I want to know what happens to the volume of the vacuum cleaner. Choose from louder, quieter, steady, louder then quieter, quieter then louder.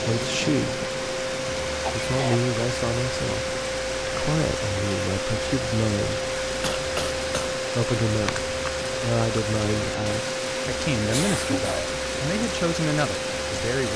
steady.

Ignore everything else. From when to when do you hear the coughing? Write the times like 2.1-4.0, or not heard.
1.8-2.5, 6.6-7.5, 11.1-11.9.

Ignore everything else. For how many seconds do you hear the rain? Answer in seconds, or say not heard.
14 s.